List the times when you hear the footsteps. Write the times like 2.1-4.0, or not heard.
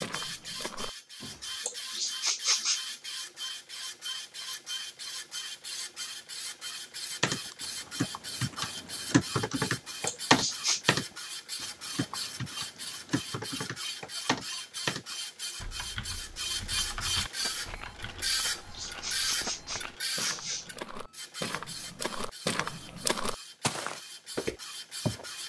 0.0-1.4, 17.4-25.2.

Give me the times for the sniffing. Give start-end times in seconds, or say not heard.
1.6-2.8, 10.1-10.8, 18.5-20.6.